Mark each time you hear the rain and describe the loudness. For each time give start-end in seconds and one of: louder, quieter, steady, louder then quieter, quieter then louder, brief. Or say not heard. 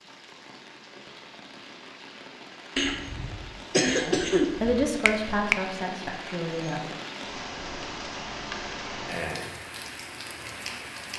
0.0-11.1 louder.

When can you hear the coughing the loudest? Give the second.
4 s.